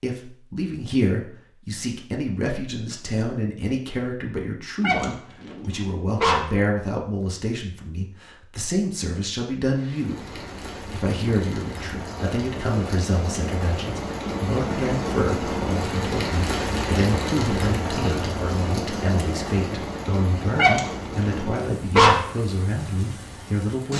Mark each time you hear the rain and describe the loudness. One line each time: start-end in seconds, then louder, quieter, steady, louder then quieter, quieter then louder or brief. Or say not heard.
9.7-23.9 louder then quieter.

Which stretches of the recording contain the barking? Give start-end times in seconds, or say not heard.
4.8-6.5, 20.6-22.2.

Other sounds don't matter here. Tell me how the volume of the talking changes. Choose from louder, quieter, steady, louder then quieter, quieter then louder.
steady.